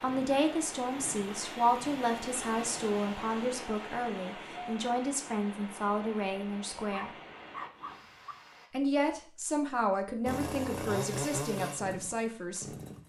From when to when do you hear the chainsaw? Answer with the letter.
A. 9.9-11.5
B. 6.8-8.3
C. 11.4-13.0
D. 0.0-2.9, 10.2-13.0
D.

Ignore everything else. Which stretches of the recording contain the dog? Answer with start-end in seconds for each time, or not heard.
6.8-8.3.